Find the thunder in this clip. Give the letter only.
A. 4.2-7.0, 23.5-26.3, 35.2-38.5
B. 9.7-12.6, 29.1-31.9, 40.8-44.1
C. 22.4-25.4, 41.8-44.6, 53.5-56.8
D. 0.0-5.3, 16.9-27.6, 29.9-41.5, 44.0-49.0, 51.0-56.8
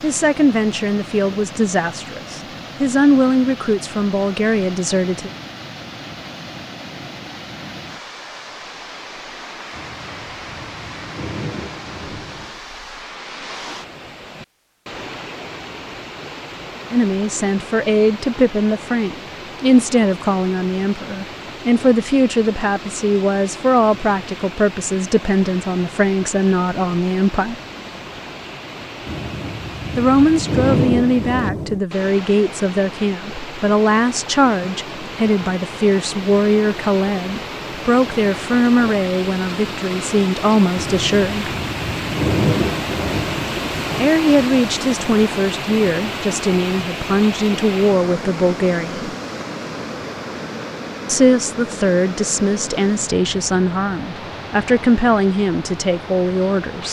B.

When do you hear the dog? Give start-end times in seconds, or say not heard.
not heard.